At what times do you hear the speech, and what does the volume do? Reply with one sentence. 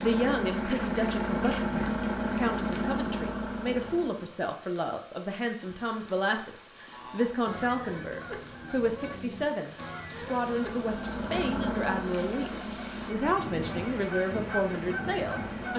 The speech can be heard from 0.0 to 15.7 s, at a steady volume.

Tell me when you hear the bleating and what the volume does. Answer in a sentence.
You can't hear the bleating here.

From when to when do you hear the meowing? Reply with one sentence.
You can't hear the meowing here.